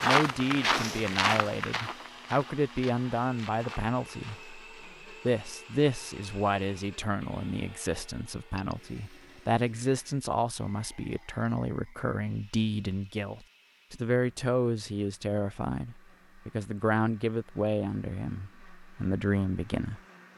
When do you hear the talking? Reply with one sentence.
The talking can be heard from 0.0 to 20.0 s.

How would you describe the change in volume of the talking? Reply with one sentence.
The volume of the talking stays about the same.